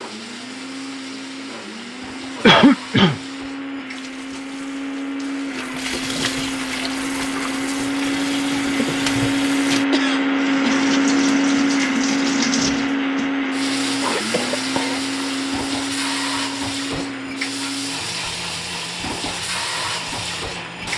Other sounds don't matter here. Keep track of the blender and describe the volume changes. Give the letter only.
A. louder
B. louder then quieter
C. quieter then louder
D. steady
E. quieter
B.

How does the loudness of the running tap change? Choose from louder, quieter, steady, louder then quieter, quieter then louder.
louder.